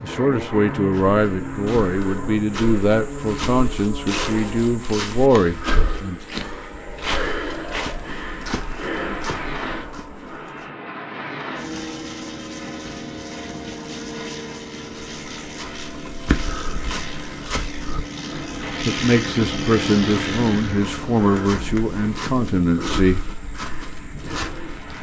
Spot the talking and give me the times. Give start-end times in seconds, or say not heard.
0.0-6.2, 18.9-23.2.